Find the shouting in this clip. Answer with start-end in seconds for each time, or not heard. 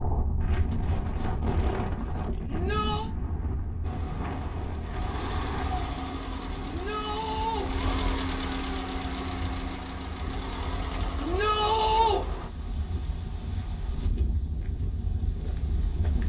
2.5-3.1, 6.7-7.7, 11.2-12.2.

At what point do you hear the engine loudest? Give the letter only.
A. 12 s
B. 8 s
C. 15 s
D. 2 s
B.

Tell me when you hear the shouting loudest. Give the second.
12 s.